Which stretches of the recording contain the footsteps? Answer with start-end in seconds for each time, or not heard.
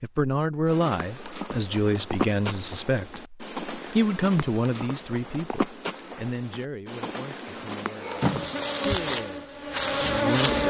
0.7-8.9.